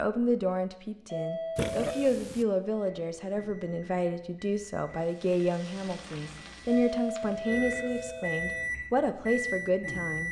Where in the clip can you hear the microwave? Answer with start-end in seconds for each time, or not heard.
2.8-10.2.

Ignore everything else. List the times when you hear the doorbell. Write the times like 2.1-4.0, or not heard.
1.1-2.1, 6.7-8.7.